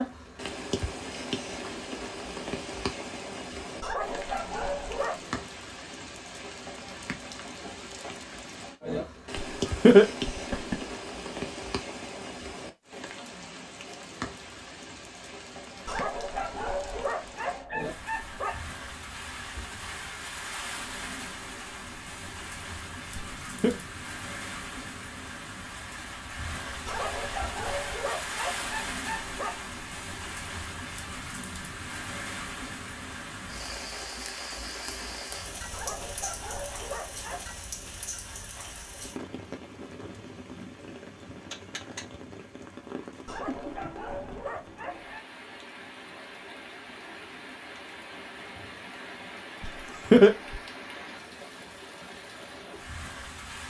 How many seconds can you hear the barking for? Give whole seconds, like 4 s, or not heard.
11 s.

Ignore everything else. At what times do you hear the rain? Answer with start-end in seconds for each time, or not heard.
0.0-53.6.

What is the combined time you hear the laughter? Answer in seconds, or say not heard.
3 s.